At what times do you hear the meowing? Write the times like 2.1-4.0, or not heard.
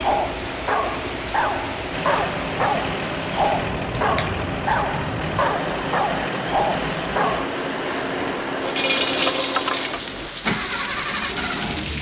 not heard.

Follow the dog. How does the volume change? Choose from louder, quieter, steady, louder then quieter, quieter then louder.
steady.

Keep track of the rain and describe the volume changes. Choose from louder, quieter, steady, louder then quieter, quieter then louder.
steady.